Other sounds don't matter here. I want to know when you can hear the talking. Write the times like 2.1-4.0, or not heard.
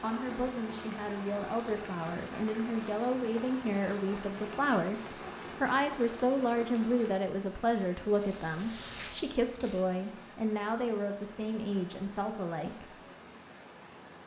0.0-13.0.